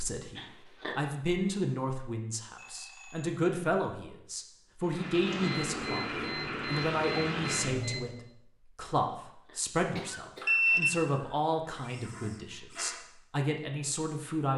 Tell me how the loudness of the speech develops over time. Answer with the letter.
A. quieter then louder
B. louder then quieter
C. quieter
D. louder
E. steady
E.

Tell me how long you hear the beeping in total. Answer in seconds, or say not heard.
5 s.